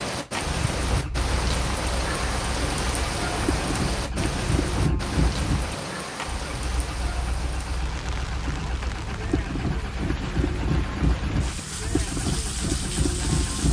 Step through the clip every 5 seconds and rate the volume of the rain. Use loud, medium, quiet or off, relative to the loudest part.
loud, medium, medium.